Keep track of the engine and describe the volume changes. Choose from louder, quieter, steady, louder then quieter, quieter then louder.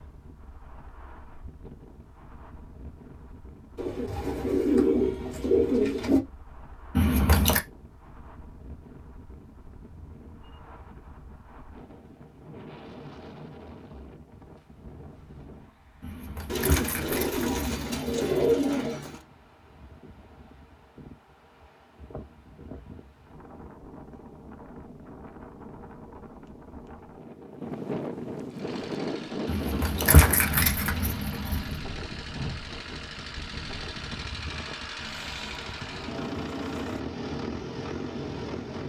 louder.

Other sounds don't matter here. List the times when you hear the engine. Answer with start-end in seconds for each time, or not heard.
28.4-38.8.